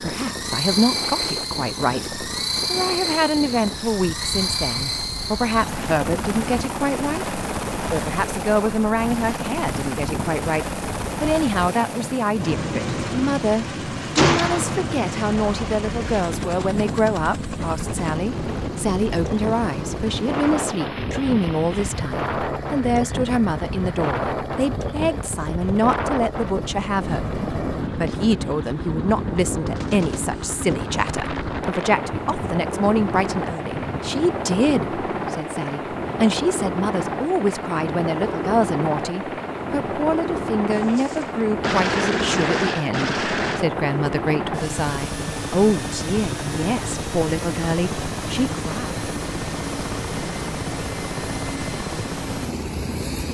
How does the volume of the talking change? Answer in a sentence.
The volume of the talking stays about the same.